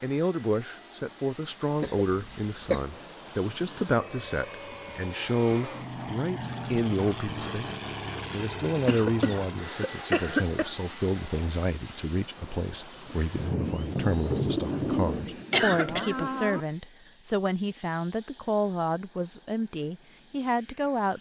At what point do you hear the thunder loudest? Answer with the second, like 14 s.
14 s.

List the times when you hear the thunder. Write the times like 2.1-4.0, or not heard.
13.2-16.6.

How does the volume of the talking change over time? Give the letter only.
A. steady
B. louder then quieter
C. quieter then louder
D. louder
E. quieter
A.